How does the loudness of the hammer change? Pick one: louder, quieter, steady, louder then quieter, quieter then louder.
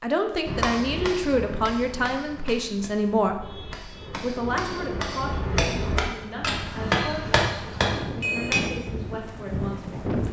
quieter then louder.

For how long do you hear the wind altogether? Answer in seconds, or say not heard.
6 s.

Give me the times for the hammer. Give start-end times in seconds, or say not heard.
0.5-8.6.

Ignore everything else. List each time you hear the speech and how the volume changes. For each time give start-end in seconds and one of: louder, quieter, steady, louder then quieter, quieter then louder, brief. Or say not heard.
0.0-10.2 quieter.